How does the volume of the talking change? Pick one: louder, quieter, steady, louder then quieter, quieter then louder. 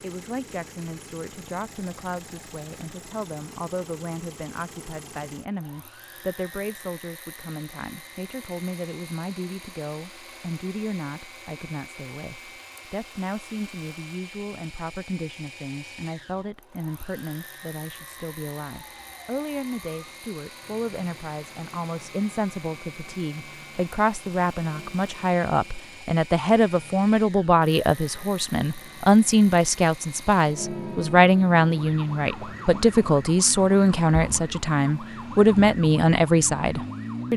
louder.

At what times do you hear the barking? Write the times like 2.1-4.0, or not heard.
not heard.